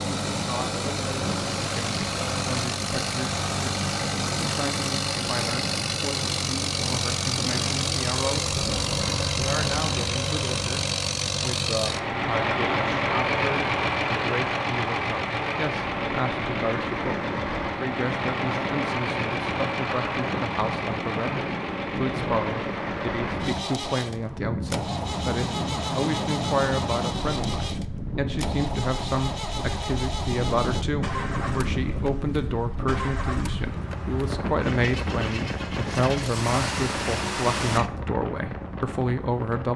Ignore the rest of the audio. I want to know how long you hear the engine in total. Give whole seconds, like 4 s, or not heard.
38 s.